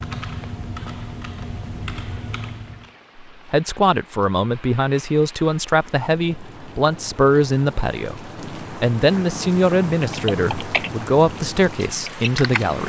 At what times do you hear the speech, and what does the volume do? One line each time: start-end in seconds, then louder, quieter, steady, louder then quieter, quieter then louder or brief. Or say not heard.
3.2-12.8 steady.